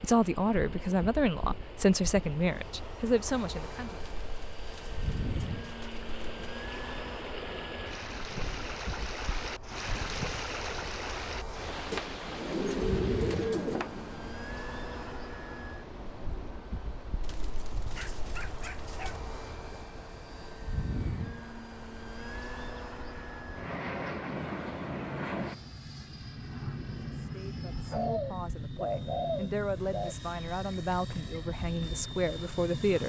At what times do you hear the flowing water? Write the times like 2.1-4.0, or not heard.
0.0-25.9.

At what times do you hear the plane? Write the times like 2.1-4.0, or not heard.
0.0-33.0.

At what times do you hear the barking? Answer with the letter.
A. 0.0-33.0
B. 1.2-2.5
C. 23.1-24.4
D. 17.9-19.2
D.